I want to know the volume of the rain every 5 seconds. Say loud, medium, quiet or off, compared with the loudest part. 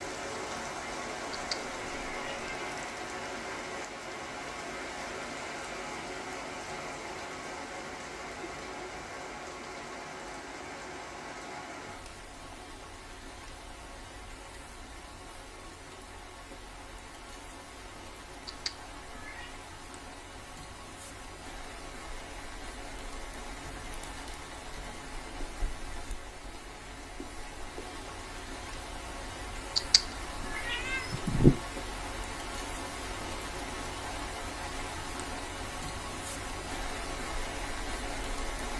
loud, loud, medium, medium, medium, medium, loud, loud.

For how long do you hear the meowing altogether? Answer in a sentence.
The meowing can be heard for 4 seconds in total.